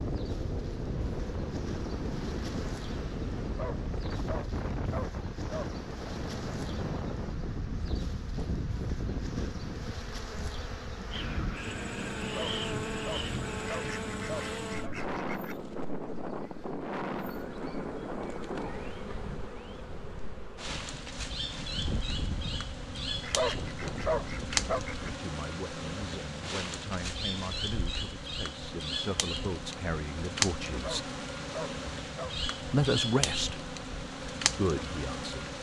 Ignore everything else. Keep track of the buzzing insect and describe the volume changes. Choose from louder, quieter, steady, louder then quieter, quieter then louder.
louder.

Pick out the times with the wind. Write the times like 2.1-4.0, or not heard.
0.0-25.2.